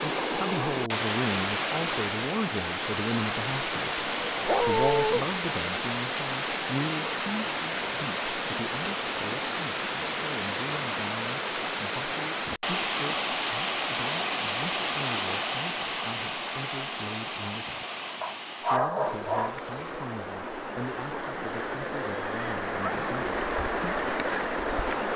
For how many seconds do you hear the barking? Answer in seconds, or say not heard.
2 s.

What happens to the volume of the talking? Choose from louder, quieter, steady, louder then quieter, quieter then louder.
quieter.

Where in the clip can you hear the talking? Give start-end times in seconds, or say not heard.
0.2-17.9, 18.6-23.4.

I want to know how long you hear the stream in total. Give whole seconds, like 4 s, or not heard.
25 s.